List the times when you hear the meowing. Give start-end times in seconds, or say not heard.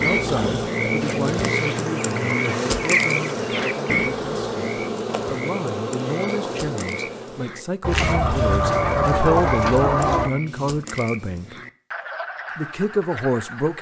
not heard.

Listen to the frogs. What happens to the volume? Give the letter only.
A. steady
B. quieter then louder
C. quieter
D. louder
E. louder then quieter
C.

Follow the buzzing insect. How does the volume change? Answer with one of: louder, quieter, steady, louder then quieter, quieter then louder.
steady.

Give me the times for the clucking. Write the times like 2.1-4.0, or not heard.
1.0-4.0, 7.8-10.3.